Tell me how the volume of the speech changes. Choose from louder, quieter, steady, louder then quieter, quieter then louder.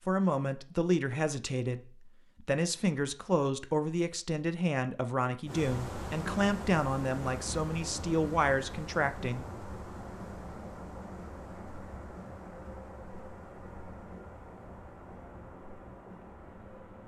steady.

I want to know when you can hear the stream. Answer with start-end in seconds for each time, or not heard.
5.5-17.0.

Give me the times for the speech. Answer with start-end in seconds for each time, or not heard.
0.1-9.4.